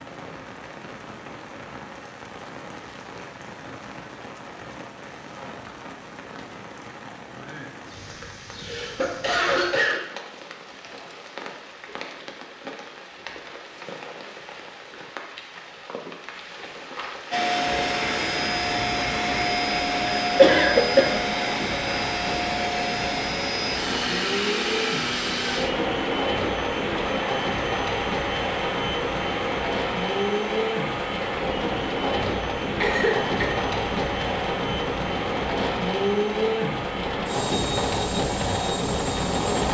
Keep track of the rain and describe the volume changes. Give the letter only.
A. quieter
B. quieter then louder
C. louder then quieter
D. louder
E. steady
D.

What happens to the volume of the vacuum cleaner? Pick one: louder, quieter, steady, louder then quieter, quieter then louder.
quieter.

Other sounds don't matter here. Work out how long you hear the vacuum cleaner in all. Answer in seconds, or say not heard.
22 s.